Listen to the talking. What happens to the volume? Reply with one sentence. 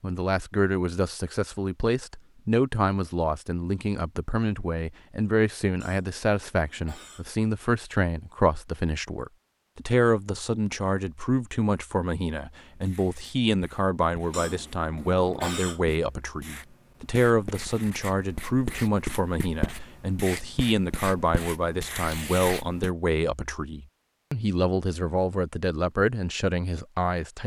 The volume of the talking stays about the same.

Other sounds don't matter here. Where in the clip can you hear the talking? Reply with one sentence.
You can hear the talking from 0.0 to 27.4 s.